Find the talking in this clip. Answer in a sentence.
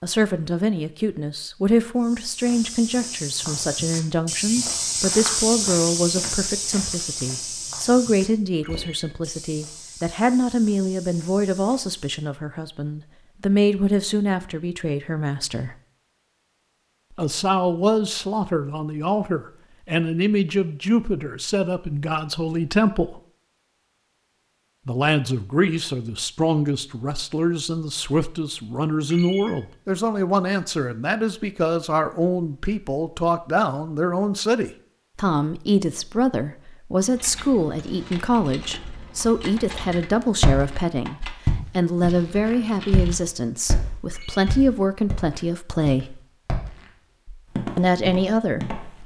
You can hear the talking from 0.0 to 15.8 s, from 17.1 to 23.2 s, from 24.9 to 46.2 s and from 47.8 to 48.7 s.